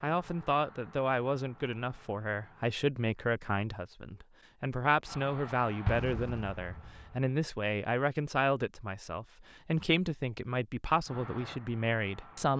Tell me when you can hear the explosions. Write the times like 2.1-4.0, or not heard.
5.8-7.2.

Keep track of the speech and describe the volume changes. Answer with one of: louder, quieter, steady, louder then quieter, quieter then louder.
steady.